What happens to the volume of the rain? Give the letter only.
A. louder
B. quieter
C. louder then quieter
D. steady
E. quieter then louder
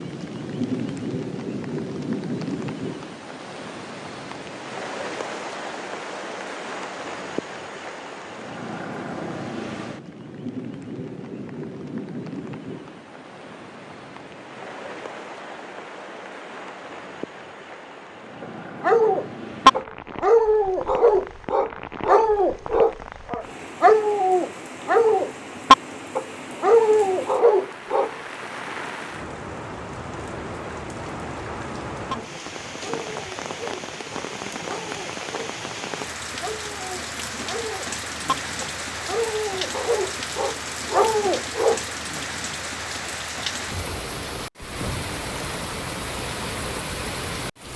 E.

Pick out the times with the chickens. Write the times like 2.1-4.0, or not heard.
not heard.